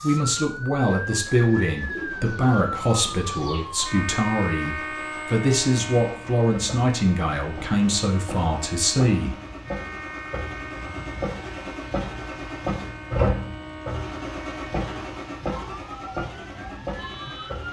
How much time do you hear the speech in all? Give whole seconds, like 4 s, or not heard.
9 s.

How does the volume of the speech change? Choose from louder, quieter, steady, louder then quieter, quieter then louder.
steady.